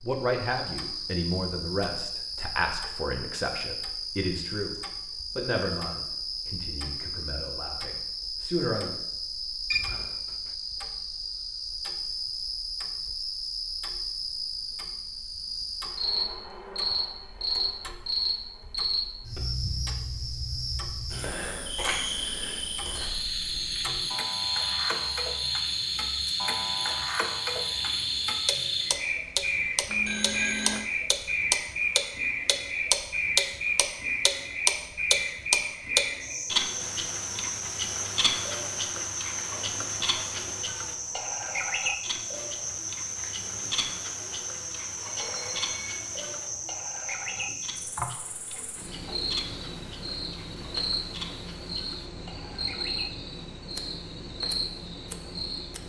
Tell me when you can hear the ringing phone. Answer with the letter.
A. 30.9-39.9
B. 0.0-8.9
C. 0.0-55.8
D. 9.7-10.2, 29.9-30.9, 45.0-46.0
D.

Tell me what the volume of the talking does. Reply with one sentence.
The loudness of the talking goes down.